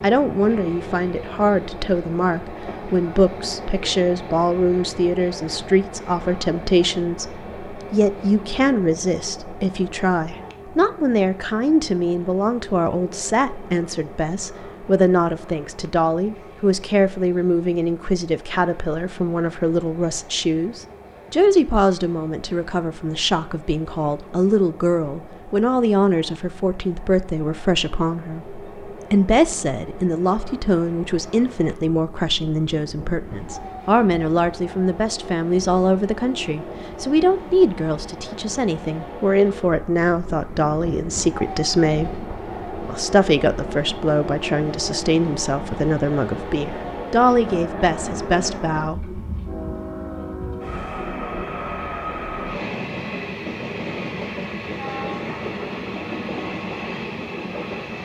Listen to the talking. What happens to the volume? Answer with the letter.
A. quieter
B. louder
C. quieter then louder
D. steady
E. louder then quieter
D.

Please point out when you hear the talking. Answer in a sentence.
You can hear the talking from 0.0 to 49.2 s.